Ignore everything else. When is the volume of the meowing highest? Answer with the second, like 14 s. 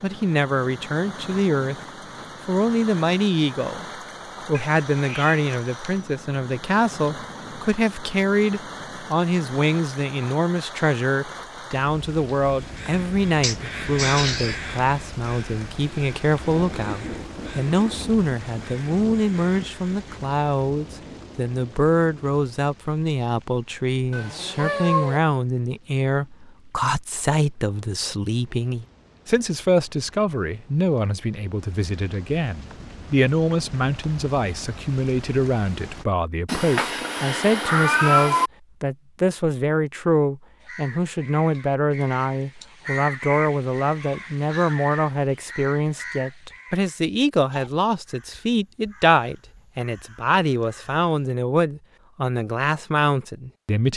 38 s.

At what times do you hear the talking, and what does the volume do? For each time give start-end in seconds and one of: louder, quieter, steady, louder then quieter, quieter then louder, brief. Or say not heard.
0.0-1.8 brief
2.5-3.9 brief
4.5-53.9 steady.